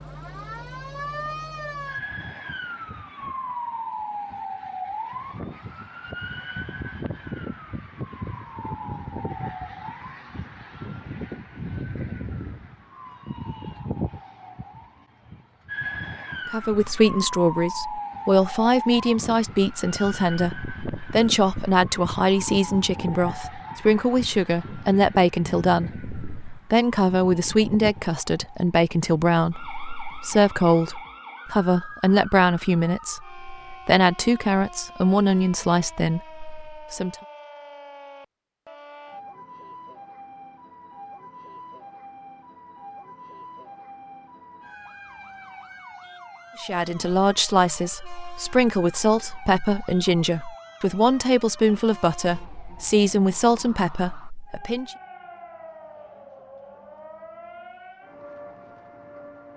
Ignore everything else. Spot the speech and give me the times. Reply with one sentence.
The speech can be heard from 16.5 to 37.1 s and from 46.6 to 55.0 s.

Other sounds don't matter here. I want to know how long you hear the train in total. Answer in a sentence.
The train can't be heard in this clip.